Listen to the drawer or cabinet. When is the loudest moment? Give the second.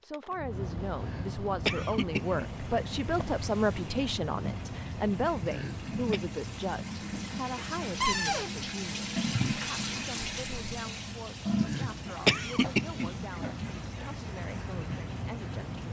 8 s.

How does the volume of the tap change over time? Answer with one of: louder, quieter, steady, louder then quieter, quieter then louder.
louder then quieter.